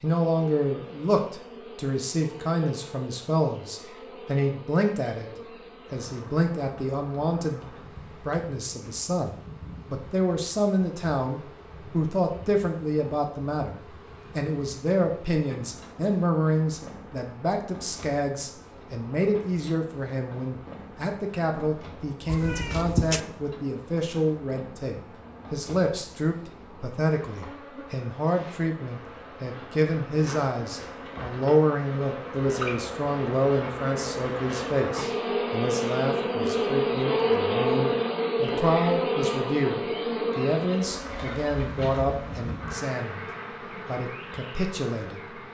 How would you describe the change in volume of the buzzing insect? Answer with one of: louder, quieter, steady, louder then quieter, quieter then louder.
louder.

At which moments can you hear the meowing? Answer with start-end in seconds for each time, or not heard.
22.2-23.2.